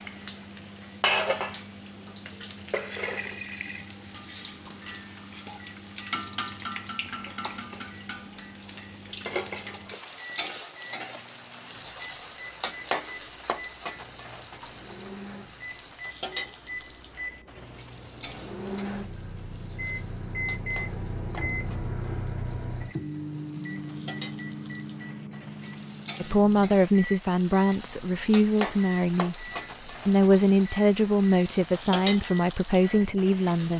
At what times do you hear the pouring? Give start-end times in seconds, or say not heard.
2.8-4.0.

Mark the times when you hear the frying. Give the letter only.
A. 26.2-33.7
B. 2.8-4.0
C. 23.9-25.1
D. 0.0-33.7
D.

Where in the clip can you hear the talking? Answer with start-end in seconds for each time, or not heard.
26.2-33.7.